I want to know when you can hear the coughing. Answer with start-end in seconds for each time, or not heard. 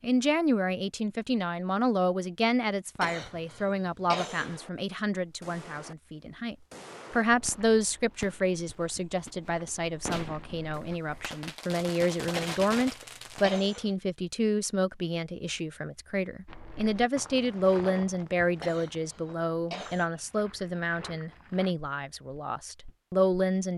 3.0-4.6, 12.3-13.9, 18.6-20.1.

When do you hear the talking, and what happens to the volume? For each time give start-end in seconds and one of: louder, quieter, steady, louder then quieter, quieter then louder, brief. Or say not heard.
0.0-23.7 steady.